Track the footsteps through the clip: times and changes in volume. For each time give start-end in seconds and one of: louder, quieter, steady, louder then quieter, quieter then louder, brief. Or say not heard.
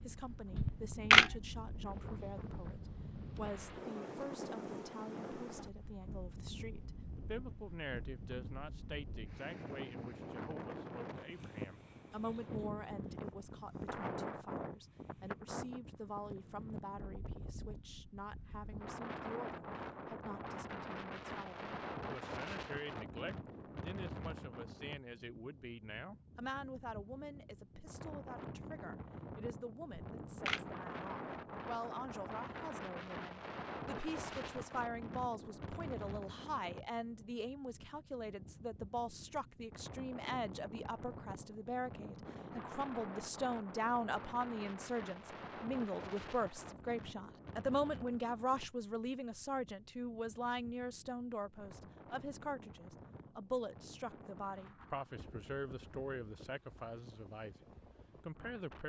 not heard.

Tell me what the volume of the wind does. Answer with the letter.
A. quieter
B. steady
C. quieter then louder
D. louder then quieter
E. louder
A.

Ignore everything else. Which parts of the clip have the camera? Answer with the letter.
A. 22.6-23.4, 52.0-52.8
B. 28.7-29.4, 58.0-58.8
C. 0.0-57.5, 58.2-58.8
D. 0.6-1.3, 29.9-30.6
D.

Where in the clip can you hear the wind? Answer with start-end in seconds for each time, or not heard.
0.0-58.8.